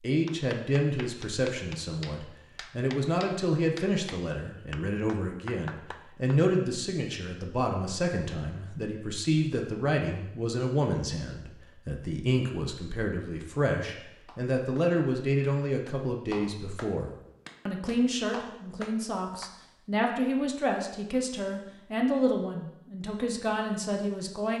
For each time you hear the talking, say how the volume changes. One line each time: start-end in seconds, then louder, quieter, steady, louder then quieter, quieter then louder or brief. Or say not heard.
0.0-24.5 steady.